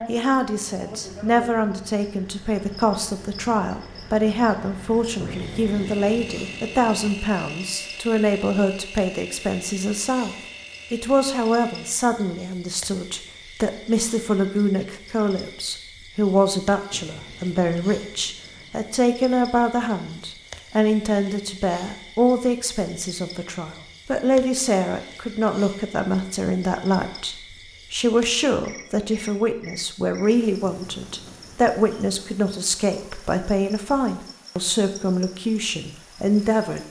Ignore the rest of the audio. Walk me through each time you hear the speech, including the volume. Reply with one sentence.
You can hear the speech from 0.1 to 36.8 s, at a steady volume.